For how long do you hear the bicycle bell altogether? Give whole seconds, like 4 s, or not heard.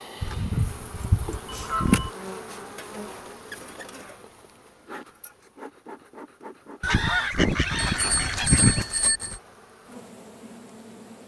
2 s.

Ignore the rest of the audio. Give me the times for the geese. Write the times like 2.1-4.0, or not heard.
0.2-2.1, 6.8-8.8.